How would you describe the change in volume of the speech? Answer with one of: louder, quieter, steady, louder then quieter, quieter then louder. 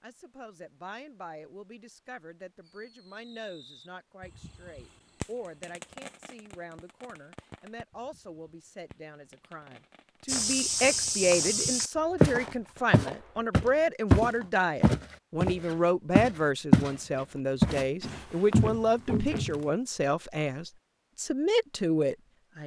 louder.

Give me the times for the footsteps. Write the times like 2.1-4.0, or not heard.
10.2-16.9, 17.6-19.6.